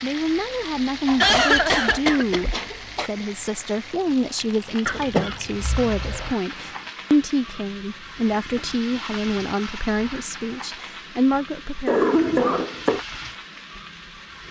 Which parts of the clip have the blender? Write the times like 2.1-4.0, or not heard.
not heard.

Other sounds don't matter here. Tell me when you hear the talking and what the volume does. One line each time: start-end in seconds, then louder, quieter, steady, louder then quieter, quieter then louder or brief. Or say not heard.
0.0-12.1 steady.